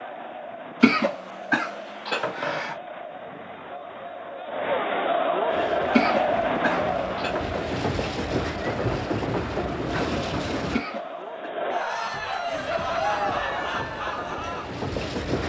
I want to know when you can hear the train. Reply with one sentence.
The train can be heard from 5.5 to 10.8 s and from 12.5 to 15.4 s.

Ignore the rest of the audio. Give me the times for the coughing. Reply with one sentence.
You can hear the coughing from 0.8 to 2.8 s, from 5.9 to 7.5 s and from 10.7 to 11.5 s.